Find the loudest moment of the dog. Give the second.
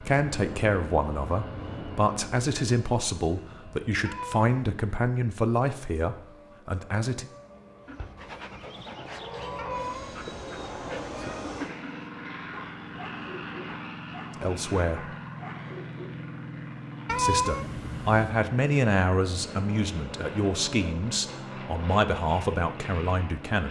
12 s.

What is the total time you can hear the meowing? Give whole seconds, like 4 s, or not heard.
4 s.